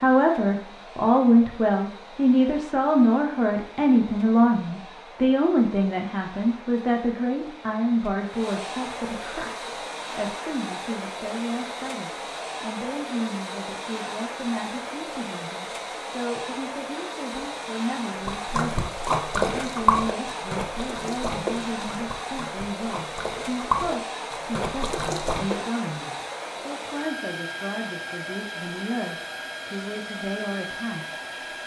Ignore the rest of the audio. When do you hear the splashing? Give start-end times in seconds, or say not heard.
18.2-25.6.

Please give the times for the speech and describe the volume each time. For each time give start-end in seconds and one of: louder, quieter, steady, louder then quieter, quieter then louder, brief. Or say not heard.
0.0-31.6 quieter.